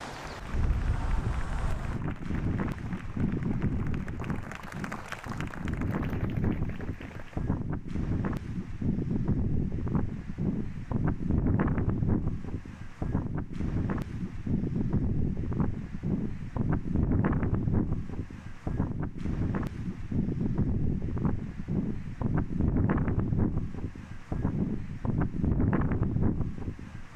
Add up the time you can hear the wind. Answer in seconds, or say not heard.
27 s.